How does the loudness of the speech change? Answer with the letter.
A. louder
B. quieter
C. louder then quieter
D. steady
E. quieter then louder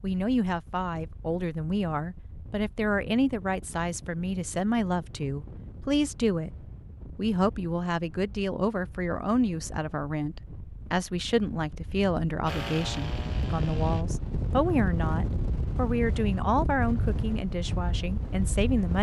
D.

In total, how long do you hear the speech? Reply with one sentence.
The speech can be heard for 19 seconds in total.